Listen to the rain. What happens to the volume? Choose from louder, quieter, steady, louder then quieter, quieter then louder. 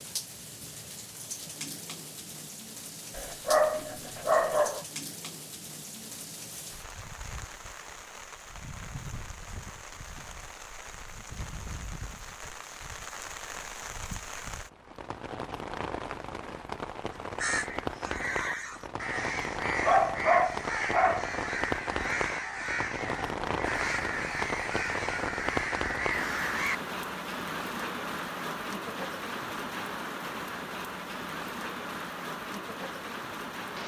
louder.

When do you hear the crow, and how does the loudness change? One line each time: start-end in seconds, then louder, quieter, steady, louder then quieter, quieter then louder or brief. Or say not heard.
17.1-26.8 steady.